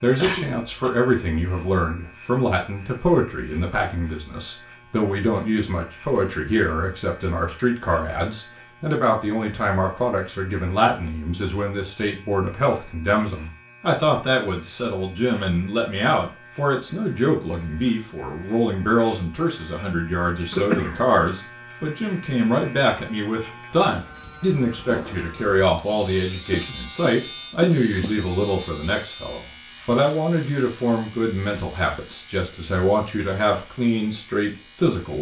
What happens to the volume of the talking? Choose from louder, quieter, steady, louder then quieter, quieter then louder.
steady.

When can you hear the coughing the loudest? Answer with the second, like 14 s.
21 s.